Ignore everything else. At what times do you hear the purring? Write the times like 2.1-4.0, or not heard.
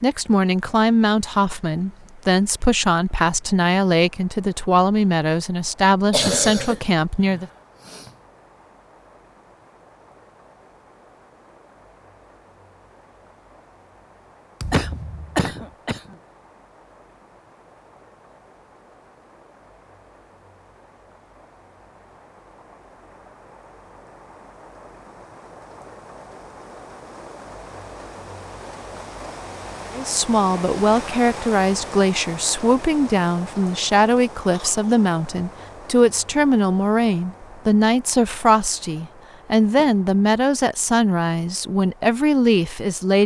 not heard.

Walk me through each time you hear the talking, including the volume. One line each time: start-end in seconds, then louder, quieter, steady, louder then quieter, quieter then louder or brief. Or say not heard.
0.0-7.5 steady
29.9-43.2 steady.